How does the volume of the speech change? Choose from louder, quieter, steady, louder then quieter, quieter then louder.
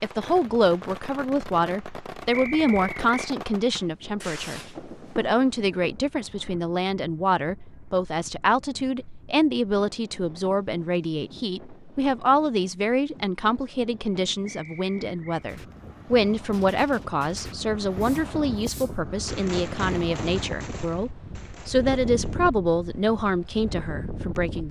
steady.